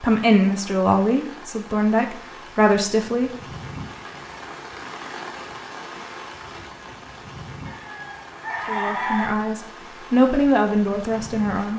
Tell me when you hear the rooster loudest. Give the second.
9 s.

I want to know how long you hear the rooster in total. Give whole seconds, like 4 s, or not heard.
2 s.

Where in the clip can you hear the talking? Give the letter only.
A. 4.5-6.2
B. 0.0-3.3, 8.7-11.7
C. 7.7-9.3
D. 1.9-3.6
B.